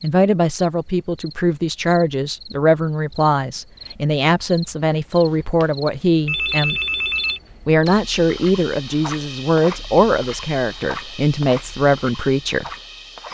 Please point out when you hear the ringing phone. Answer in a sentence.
You can hear the ringing phone from 6.2 to 7.4 s.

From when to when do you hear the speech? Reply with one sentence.
You can hear the speech from 0.0 to 6.8 s and from 7.7 to 12.7 s.